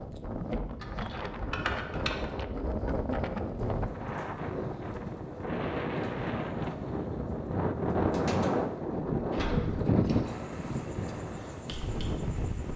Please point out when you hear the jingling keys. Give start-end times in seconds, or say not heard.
0.8-2.2, 9.3-10.3.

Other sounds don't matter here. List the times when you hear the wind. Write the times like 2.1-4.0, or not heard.
0.0-12.7.